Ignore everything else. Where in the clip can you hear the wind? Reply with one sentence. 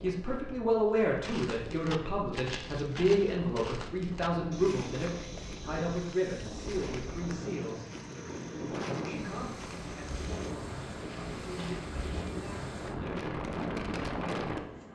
The wind can be heard from 0.0 to 14.9 s.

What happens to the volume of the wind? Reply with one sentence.
The loudness of the wind goes up.